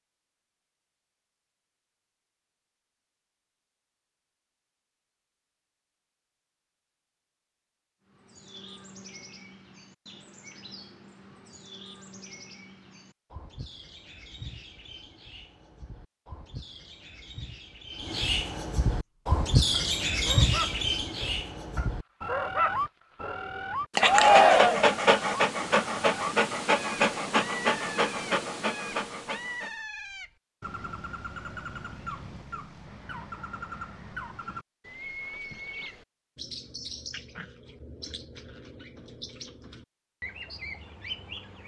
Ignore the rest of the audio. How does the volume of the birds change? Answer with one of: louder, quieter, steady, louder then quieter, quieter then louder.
louder then quieter.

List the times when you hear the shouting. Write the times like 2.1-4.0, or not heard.
24.1-24.9.